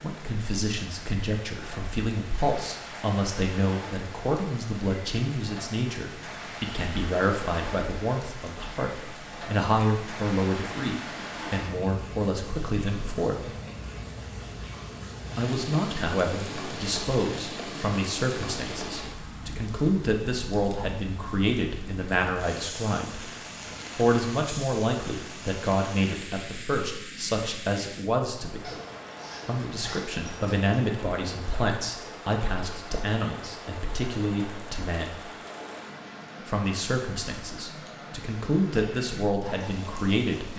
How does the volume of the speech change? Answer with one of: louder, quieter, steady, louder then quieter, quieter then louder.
steady.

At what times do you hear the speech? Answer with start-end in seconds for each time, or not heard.
0.0-13.5, 15.3-23.2, 23.9-28.6, 29.4-35.2, 36.4-40.5.